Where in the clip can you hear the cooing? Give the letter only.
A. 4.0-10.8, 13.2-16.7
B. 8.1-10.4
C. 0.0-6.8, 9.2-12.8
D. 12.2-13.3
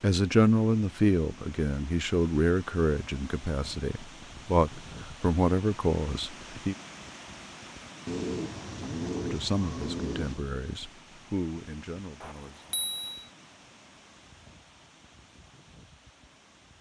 B.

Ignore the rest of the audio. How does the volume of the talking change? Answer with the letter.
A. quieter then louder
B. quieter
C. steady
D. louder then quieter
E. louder
B.